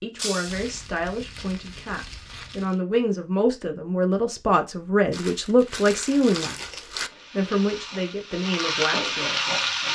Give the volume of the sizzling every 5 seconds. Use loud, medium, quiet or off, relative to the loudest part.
off, loud.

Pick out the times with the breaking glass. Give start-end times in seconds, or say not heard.
0.1-0.7.